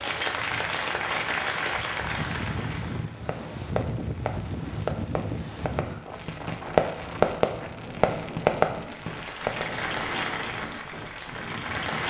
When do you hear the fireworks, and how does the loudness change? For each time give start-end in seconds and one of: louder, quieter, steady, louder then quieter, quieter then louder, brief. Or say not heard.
3.0-9.7 louder.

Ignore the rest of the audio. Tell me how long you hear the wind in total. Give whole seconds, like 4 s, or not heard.
12 s.